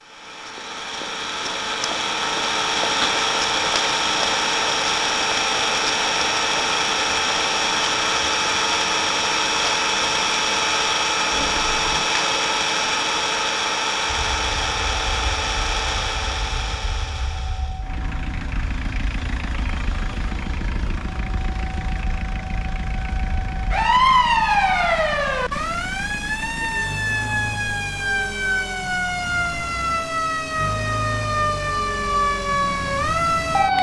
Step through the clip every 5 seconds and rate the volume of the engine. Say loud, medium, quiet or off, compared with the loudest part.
loud, loud, loud, medium, quiet, quiet, quiet.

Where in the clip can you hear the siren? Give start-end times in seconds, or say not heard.
14.1-33.7.